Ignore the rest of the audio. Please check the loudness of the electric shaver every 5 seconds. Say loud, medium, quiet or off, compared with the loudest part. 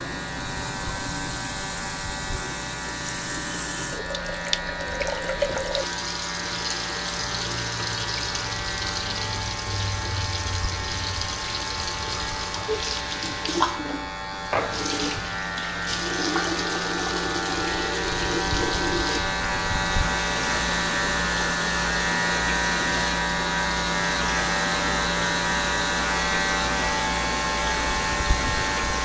medium, medium, medium, loud, loud, loud.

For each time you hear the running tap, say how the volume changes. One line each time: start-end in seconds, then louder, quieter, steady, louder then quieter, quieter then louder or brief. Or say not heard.
0.0-29.0 steady.